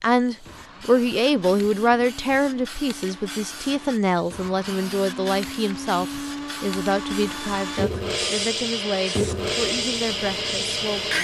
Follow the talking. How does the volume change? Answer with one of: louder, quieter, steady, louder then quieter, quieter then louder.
quieter.